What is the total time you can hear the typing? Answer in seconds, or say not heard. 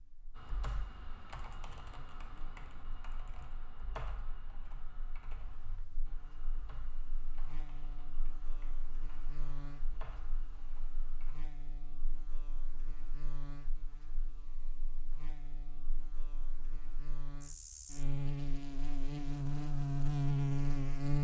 11 s.